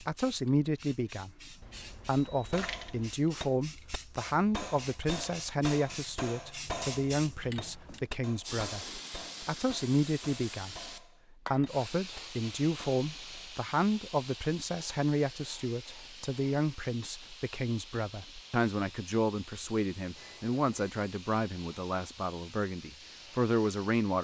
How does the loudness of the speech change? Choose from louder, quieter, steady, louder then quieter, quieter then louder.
steady.